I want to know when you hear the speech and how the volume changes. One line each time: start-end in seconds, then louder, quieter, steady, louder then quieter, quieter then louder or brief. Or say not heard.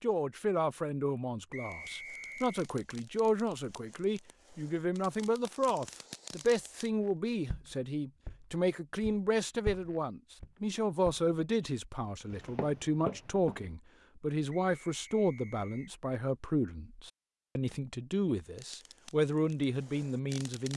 0.0-20.7 steady.